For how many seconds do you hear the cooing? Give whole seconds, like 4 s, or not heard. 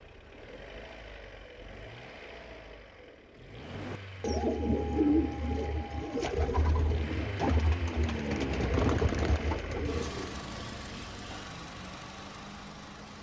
7 s.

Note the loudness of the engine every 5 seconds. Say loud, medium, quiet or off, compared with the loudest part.
medium, loud, loud.